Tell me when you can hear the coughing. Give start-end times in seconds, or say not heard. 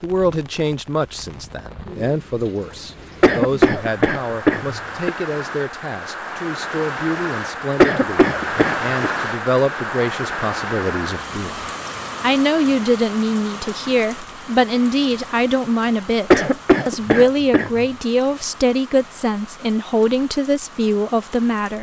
3.2-5.1, 7.8-9.1, 16.3-17.9.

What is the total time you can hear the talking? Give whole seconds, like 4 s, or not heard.
22 s.